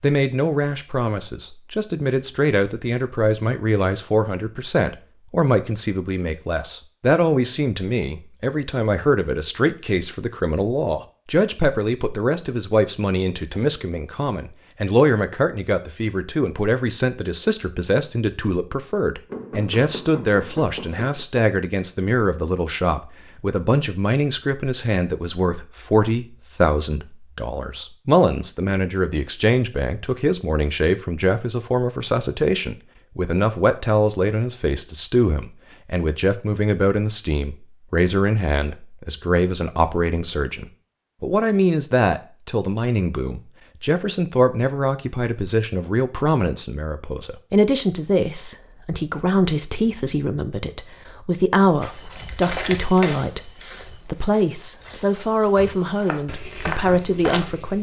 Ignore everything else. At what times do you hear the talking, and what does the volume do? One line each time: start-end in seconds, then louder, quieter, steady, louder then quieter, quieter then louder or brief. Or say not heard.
0.0-57.7 steady.